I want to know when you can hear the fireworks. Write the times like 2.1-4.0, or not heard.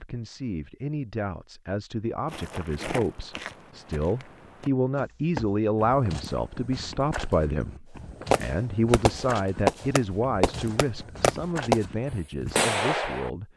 8.3-11.8, 12.6-13.3.